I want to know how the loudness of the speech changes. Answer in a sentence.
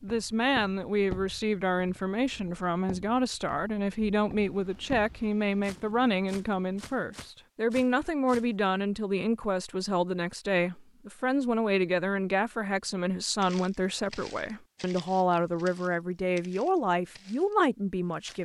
The volume of the speech stays about the same.